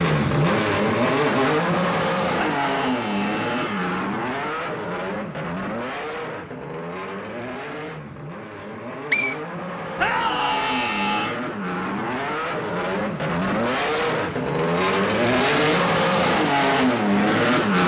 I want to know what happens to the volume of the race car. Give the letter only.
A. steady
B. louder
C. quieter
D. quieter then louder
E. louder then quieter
D.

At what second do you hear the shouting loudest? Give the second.
10 s.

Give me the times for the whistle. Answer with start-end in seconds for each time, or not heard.
8.7-9.4.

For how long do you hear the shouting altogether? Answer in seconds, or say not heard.
3 s.